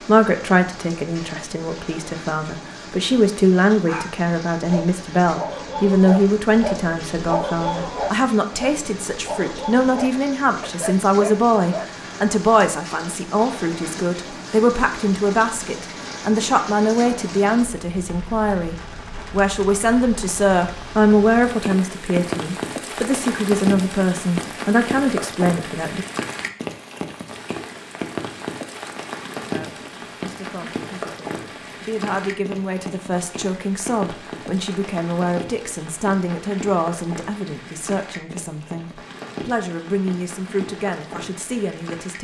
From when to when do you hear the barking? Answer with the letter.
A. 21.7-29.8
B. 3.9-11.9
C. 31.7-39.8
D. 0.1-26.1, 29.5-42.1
B.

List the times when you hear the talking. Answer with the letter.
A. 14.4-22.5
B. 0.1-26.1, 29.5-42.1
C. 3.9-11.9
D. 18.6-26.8
B.